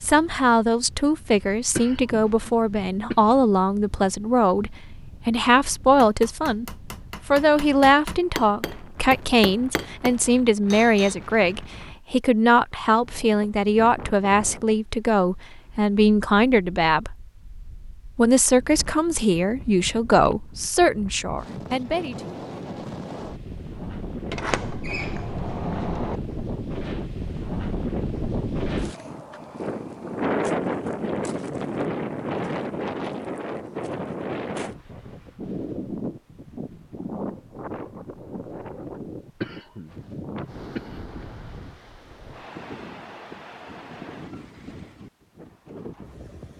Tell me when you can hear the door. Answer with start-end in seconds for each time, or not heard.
24.2-26.2.